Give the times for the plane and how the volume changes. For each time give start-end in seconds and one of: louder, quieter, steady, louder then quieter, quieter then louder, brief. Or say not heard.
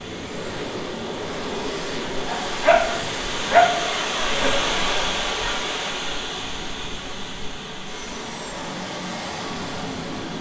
0.0-10.3 quieter then louder.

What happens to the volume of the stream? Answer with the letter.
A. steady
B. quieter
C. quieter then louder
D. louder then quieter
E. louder
D.